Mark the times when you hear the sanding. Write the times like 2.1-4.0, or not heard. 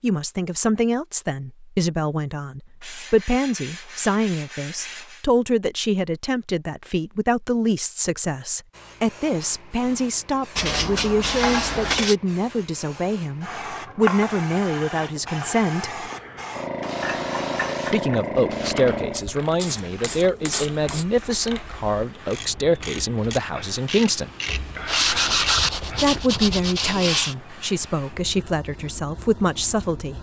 2.8-5.2, 10.6-12.2, 19.1-21.1, 24.4-27.4.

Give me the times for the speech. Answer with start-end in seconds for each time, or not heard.
0.0-16.1, 17.9-24.3, 26.0-30.1.